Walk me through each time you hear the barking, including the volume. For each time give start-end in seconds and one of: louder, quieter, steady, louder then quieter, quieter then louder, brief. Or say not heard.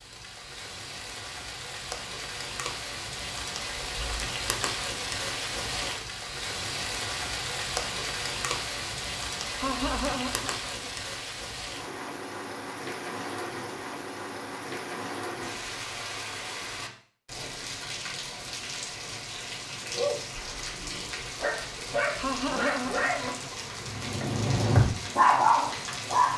19.9-26.3 louder.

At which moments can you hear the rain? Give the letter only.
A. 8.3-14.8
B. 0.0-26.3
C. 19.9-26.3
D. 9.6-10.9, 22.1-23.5
B.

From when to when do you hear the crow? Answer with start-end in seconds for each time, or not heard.
not heard.